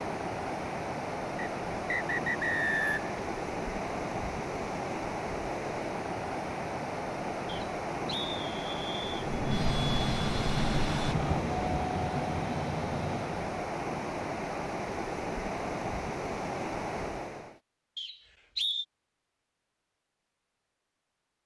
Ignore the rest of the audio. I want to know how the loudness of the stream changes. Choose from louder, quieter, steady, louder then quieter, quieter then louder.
steady.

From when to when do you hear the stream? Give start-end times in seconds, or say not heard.
0.0-17.6.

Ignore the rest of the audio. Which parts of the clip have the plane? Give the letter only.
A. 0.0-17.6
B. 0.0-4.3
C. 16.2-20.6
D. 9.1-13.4
D.